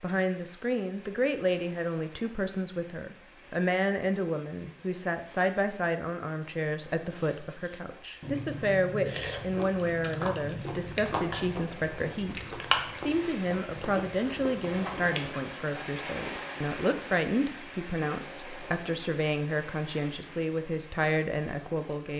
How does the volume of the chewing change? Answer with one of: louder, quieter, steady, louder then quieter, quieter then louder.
louder then quieter.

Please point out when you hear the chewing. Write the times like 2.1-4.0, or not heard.
7.1-15.5.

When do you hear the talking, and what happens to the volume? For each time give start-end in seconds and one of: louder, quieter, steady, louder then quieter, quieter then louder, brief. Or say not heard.
0.0-22.1 steady.